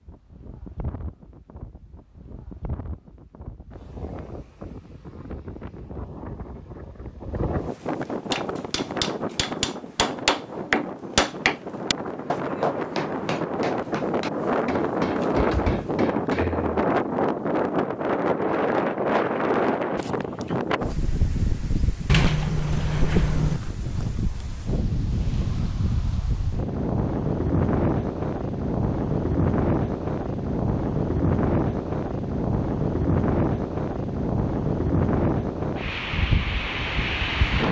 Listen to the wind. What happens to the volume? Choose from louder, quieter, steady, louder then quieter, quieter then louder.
louder.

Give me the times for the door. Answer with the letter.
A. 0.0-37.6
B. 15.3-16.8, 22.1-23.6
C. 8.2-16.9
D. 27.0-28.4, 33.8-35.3
B.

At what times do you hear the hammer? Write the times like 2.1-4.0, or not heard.
8.2-16.9.